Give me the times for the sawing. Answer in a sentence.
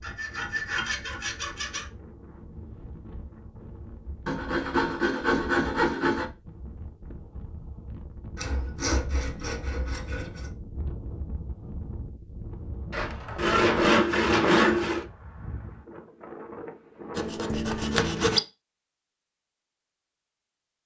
The sawing can be heard from 0.0 to 1.9 s, from 4.2 to 6.2 s, from 8.3 to 10.5 s, from 12.9 to 15.1 s and from 17.1 to 18.4 s.